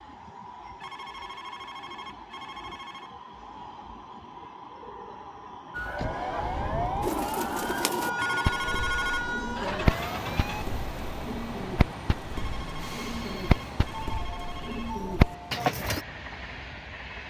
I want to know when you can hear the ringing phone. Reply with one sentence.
The ringing phone can be heard from 0.8 to 3.1 s, from 8.2 to 9.2 s and from 12.3 to 15.0 s.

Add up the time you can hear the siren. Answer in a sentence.
The siren can be heard for 5 seconds in total.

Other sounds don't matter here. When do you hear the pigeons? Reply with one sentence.
You can hear the pigeons from 7.0 to 16.0 s.